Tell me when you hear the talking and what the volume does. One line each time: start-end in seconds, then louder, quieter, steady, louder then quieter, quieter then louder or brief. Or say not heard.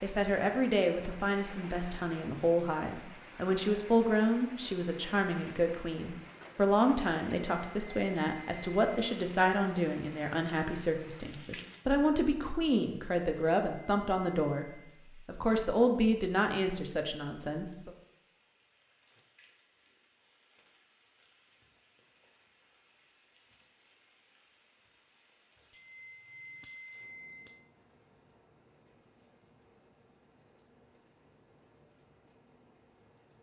0.0-17.9 steady.